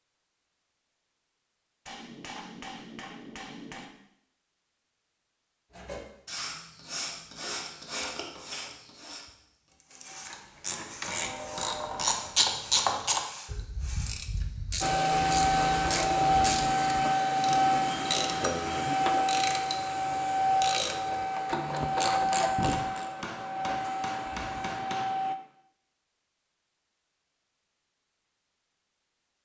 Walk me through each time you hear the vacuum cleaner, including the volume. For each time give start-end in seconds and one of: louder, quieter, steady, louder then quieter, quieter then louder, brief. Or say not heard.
14.8-25.4 quieter.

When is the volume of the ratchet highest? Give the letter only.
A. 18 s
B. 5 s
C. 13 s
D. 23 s
C.